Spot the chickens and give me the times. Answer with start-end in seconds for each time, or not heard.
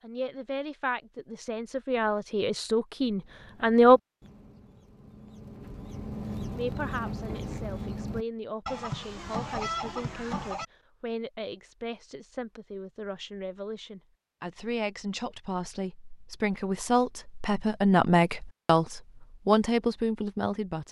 3.1-10.7.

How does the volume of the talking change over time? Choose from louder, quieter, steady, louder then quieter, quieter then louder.
quieter then louder.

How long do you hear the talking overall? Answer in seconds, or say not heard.
18 s.